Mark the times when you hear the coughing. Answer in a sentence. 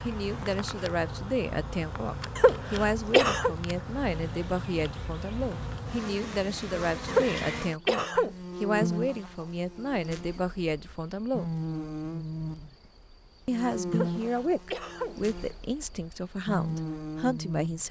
The coughing can be heard from 2.4 to 3.5 s, from 7.0 to 8.3 s and from 13.9 to 15.2 s.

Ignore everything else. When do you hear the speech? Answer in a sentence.
You can hear the speech from 0.0 to 11.5 s and from 13.4 to 17.8 s.